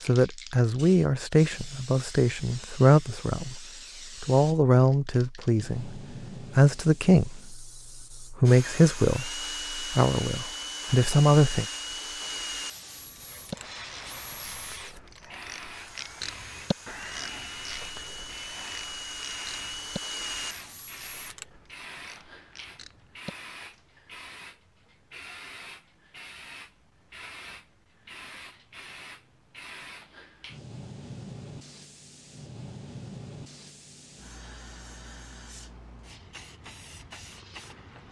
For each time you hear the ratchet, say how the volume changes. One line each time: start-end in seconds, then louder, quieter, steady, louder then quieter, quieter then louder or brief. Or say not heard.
13.3-23.9 louder then quieter.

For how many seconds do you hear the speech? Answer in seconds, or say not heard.
11 s.